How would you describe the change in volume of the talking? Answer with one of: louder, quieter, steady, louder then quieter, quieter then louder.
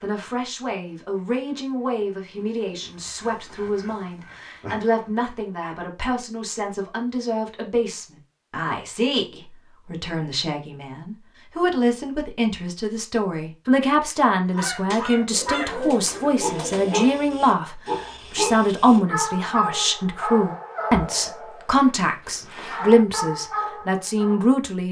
louder.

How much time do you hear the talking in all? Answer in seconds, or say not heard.
25 s.